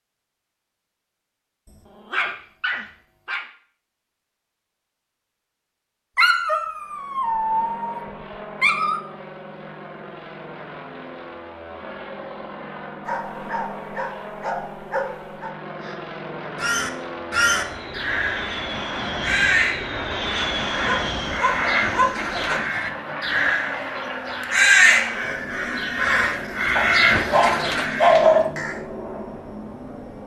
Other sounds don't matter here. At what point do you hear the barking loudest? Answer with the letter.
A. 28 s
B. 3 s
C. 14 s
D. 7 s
A.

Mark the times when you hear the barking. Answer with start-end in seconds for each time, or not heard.
2.0-3.5, 6.2-9.0, 13.1-15.6, 20.4-22.6, 26.8-28.5.